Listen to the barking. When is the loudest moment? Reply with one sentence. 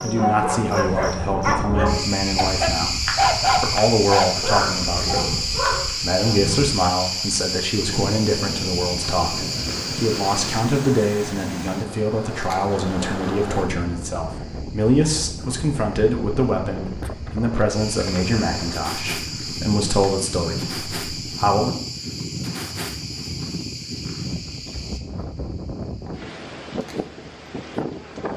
The loudest moment of the barking is at 3 seconds.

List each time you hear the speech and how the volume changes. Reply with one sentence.
You can hear the speech from 0.0 to 21.7 s, at a steady volume.